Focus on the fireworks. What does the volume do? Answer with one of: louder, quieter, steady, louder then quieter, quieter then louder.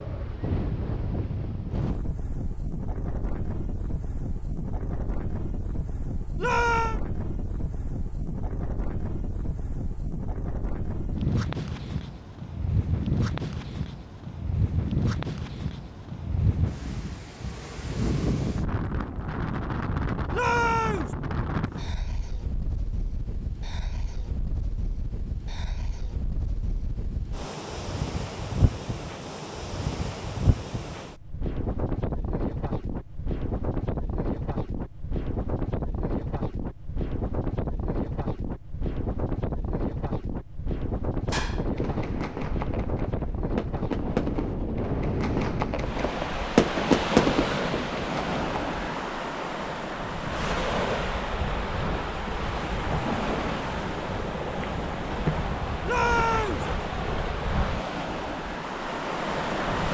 louder.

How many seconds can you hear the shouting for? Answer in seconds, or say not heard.
2 s.